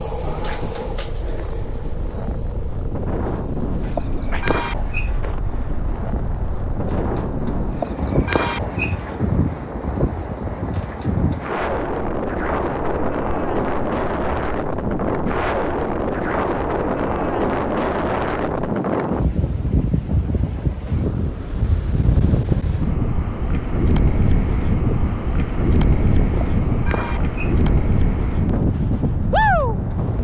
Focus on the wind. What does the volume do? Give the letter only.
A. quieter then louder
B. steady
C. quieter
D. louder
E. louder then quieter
D.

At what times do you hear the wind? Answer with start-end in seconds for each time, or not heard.
0.2-30.1.